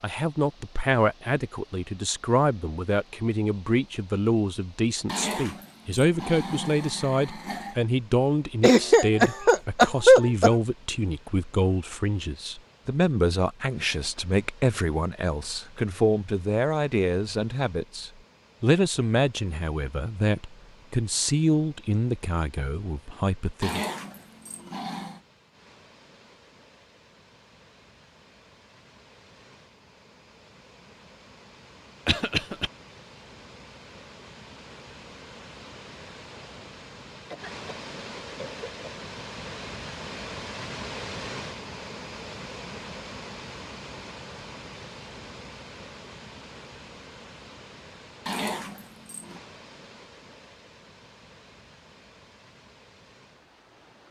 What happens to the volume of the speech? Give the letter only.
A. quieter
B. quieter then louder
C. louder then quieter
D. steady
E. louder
D.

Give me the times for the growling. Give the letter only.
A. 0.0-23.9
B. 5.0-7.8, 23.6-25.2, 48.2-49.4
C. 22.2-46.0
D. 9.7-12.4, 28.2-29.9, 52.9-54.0
B.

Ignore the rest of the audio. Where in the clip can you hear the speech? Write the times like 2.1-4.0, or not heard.
0.0-23.9.